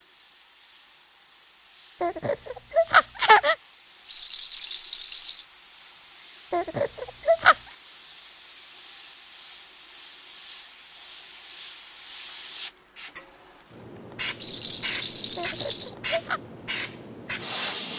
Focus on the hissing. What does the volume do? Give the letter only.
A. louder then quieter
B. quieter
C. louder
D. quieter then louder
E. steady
C.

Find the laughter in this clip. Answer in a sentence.
You can hear the laughter from 2.0 to 3.5 s, from 6.5 to 7.5 s and from 15.3 to 16.4 s.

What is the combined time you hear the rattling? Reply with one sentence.
The rattling can be heard for 3 seconds in total.